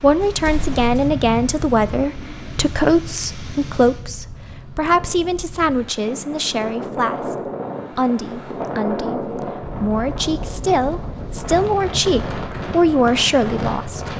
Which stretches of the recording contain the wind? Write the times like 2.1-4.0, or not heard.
0.0-14.1.